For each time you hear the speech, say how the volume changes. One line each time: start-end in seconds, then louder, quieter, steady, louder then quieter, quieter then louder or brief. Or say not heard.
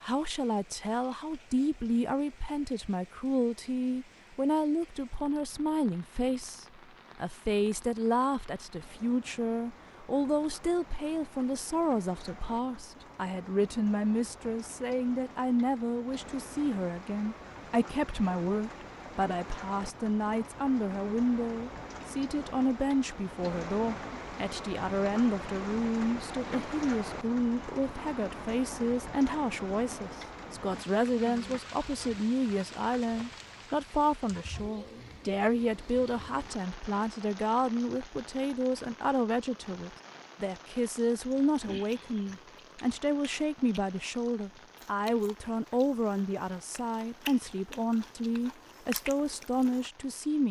0.0-50.4 steady.